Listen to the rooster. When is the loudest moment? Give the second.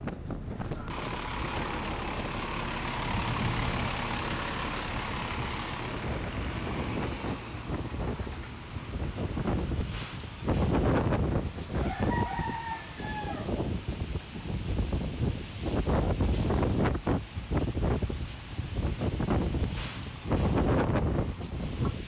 12 s.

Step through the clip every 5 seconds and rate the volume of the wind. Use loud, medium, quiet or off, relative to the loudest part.
medium, medium, loud, loud, loud.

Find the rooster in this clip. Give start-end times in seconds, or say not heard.
11.8-13.6.